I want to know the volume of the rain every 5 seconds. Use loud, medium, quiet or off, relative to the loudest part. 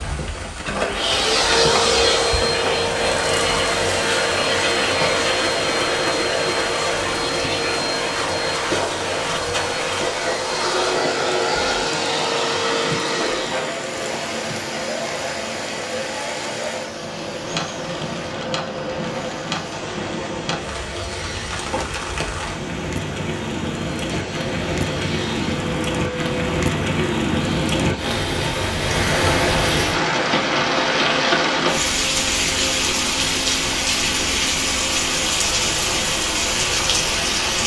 medium, medium, medium, medium, medium, loud, loud, loud.